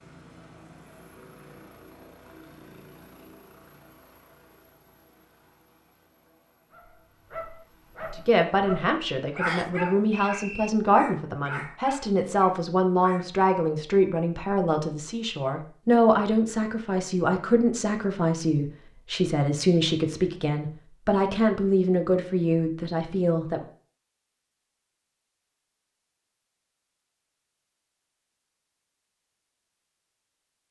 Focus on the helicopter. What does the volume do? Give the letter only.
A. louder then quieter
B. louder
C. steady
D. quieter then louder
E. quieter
E.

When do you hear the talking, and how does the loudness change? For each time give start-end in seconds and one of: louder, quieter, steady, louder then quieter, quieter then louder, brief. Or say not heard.
8.2-23.6 steady.